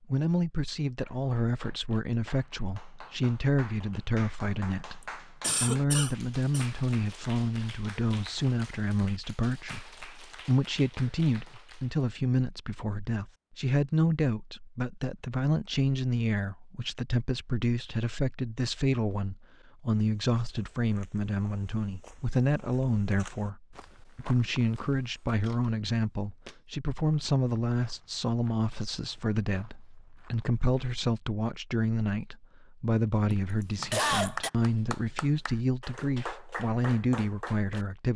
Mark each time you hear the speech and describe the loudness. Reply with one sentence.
The speech can be heard from 0.1 to 38.1 s, at a steady volume.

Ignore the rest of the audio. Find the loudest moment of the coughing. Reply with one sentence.
The loudest moment of the coughing is at 34 seconds.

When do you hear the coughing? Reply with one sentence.
You can hear the coughing from 5.4 to 6.7 s and from 33.3 to 34.5 s.